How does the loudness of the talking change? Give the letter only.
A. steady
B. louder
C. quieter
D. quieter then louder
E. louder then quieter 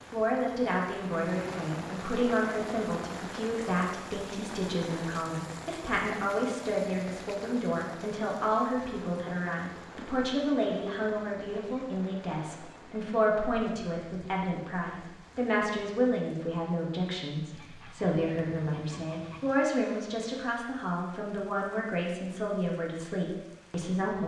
A.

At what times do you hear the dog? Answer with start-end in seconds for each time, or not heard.
not heard.